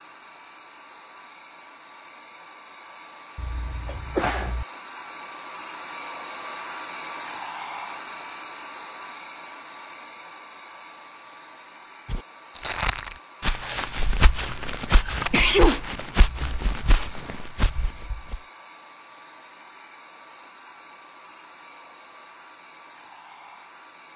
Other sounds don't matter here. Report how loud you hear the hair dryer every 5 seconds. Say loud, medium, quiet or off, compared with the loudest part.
medium, loud, medium, medium, medium.